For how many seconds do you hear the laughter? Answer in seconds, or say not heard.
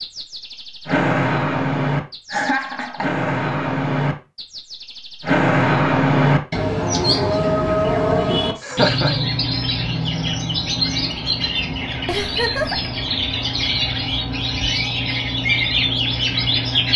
3 s.